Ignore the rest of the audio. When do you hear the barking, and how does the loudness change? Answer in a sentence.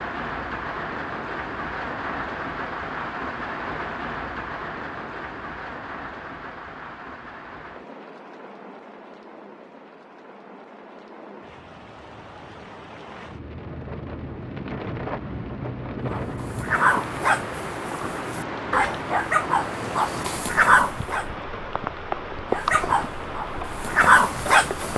The barking can be heard from 16.1 to 21.2 s, getting quieter then louder; and briefly from 22.5 to 24.9 s.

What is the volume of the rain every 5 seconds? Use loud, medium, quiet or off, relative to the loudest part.
loud, medium, medium, loud, loud.